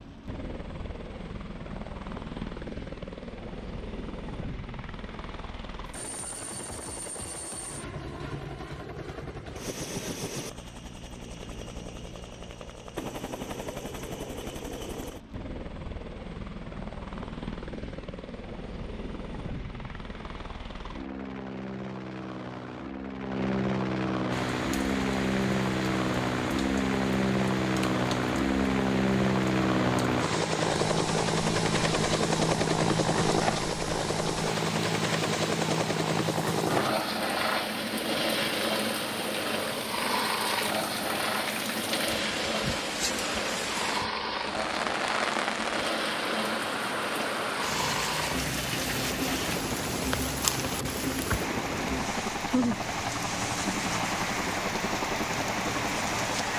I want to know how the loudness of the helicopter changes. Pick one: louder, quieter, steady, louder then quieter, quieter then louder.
louder then quieter.